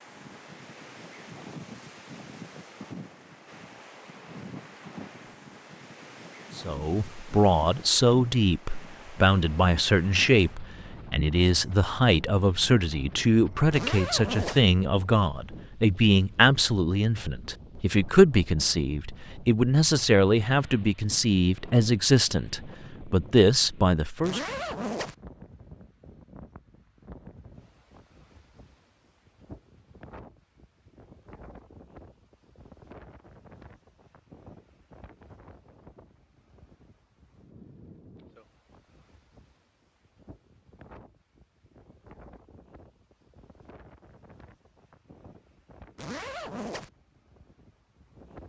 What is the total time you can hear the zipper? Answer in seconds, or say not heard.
3 s.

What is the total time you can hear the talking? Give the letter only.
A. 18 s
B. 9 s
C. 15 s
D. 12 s
A.